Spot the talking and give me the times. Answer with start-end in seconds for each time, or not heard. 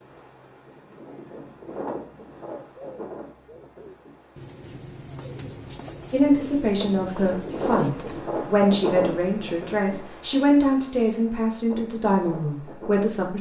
6.1-13.3.